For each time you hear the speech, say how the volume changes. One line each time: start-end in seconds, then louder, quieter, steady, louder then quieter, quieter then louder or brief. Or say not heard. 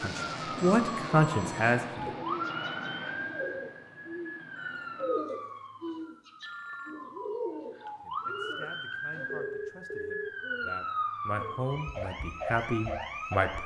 0.0-2.1 brief
8.0-13.6 louder.